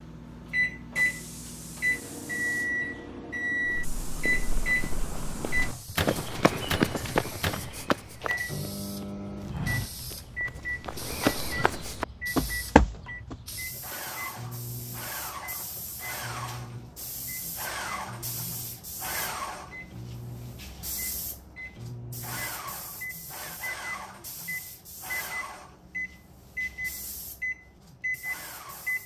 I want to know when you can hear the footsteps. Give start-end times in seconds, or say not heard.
3.6-13.3.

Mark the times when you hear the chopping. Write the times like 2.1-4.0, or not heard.
not heard.